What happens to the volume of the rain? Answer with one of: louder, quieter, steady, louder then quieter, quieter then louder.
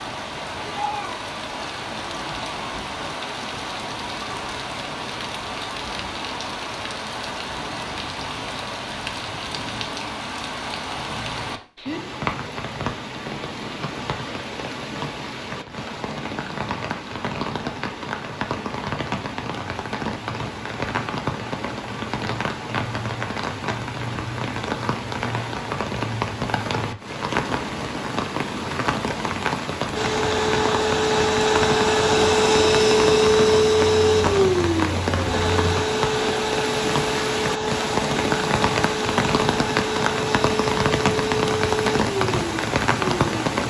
louder.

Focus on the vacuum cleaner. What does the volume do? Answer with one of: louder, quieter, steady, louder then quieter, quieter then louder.
quieter.